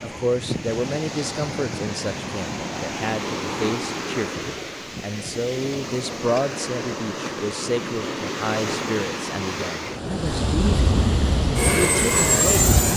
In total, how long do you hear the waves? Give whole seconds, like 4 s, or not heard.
13 s.